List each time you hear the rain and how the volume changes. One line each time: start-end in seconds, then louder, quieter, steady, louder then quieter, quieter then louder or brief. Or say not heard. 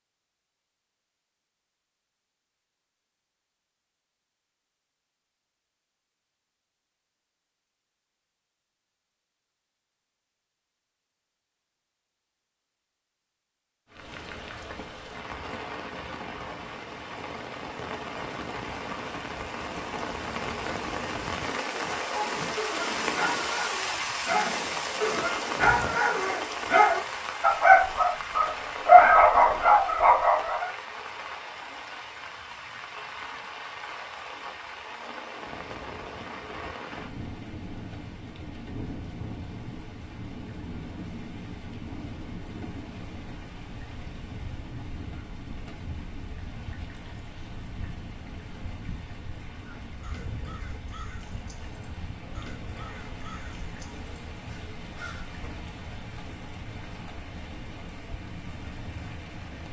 13.8-59.6 quieter.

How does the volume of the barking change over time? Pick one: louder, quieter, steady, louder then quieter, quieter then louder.
louder.